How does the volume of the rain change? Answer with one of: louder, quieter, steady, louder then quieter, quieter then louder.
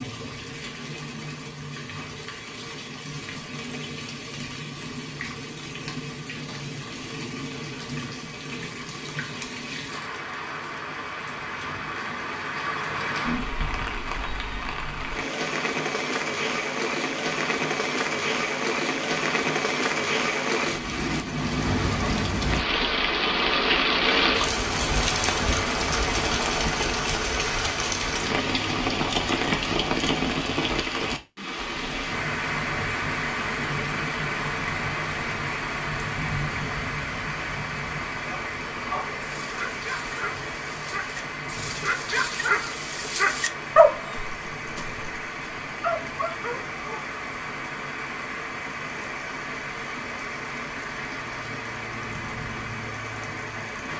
louder then quieter.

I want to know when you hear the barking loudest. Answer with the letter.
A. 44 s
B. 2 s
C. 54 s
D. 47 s
A.